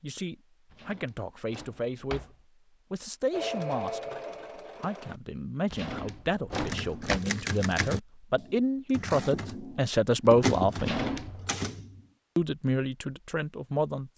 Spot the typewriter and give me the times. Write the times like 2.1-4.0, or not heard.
6.5-12.1.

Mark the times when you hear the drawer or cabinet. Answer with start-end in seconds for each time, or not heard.
0.7-2.4, 5.7-7.2, 10.8-11.5.